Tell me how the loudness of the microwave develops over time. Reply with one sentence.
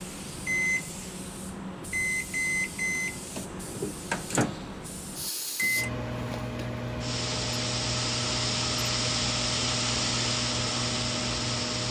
The volume of the microwave stays about the same.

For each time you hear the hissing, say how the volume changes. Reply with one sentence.
You can hear the hissing from 0.0 to 11.8 s, getting louder.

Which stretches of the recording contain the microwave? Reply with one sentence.
You can hear the microwave from 0.3 to 11.8 s.